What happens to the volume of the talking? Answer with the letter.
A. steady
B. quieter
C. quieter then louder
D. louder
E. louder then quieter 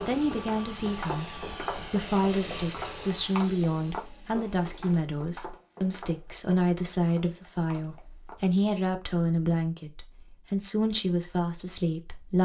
A.